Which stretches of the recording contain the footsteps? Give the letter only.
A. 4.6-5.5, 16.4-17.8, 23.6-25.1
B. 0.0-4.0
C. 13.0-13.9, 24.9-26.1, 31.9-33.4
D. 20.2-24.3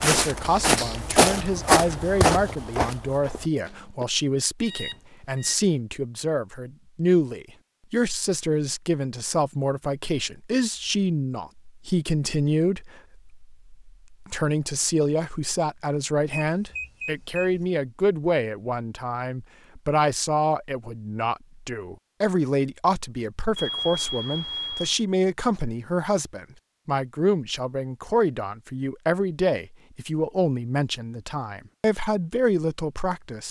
B.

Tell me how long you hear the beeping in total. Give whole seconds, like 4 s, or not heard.
4 s.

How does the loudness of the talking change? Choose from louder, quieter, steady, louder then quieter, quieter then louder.
steady.